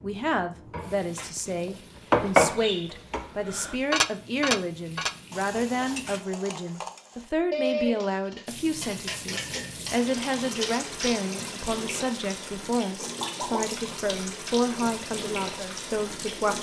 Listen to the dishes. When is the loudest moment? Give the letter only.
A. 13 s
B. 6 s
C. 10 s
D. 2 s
D.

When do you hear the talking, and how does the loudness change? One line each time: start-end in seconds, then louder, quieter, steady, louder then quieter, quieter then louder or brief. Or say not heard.
0.0-16.5 steady.